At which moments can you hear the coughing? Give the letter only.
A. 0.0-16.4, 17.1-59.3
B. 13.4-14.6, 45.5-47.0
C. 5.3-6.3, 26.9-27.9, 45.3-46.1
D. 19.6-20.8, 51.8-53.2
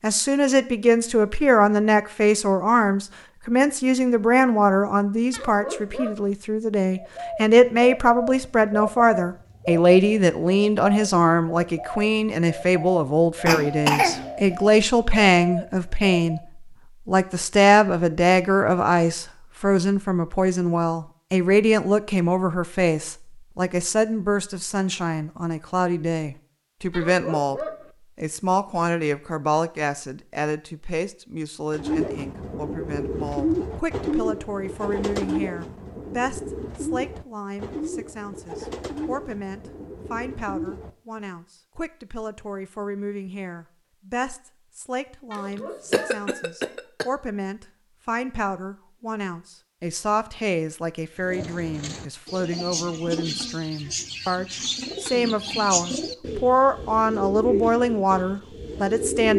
B.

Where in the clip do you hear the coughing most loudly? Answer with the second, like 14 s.
14 s.